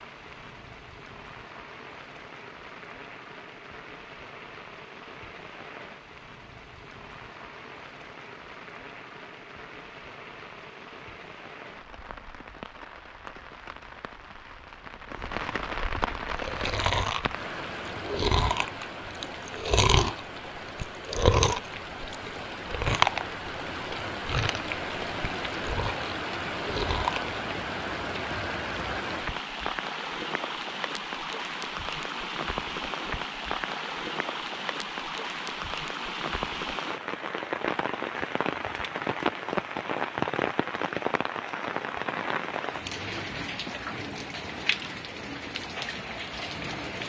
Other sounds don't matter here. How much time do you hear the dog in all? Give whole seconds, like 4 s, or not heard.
not heard.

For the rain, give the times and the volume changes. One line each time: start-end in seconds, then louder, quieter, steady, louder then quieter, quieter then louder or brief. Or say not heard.
0.0-47.0 louder.